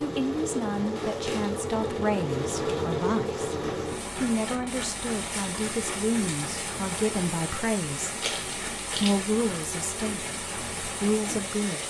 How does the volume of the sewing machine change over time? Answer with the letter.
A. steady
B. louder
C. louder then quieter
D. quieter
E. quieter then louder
D.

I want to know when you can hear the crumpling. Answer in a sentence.
The crumpling can be heard from 0.9 to 1.6 s and from 8.2 to 9.2 s.